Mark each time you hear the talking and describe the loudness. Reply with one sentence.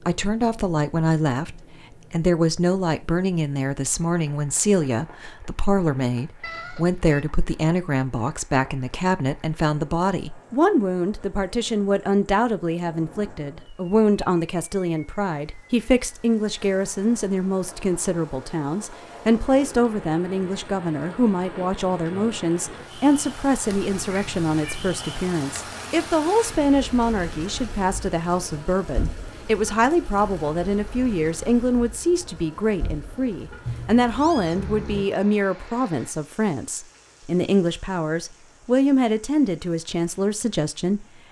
The talking can be heard from 0.1 to 41.0 s, at a steady volume.